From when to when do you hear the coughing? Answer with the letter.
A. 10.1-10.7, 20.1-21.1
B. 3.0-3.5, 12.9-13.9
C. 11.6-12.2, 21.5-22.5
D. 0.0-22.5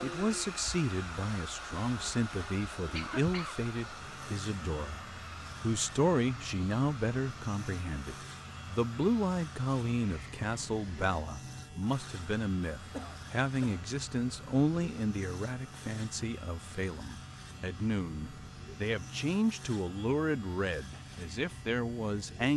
B.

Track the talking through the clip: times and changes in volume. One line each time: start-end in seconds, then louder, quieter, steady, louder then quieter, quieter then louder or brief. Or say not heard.
0.0-22.5 steady.